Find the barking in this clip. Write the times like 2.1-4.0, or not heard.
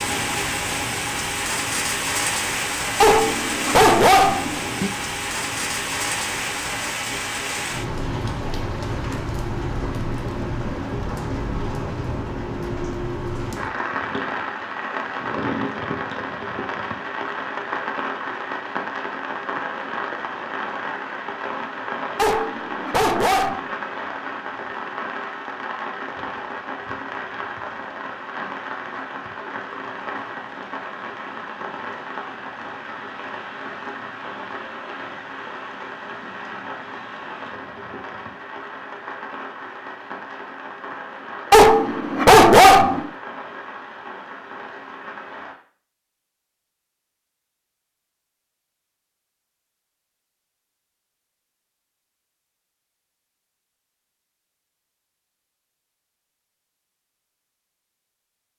3.0-4.9, 22.1-23.7, 41.5-43.1.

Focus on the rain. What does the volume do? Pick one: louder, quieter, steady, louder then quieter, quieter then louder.
quieter.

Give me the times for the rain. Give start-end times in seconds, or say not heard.
0.0-45.5.